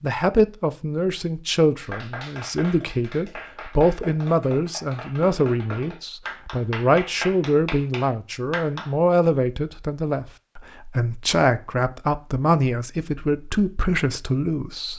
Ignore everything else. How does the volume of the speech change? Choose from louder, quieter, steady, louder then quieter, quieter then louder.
steady.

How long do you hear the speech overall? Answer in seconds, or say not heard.
15 s.